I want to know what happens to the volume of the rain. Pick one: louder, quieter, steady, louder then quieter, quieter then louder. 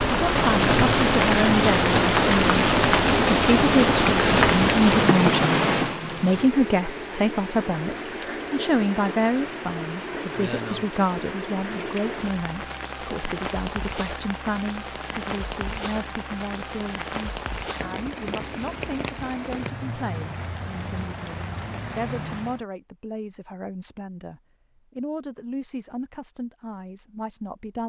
quieter.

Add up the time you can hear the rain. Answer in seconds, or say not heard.
23 s.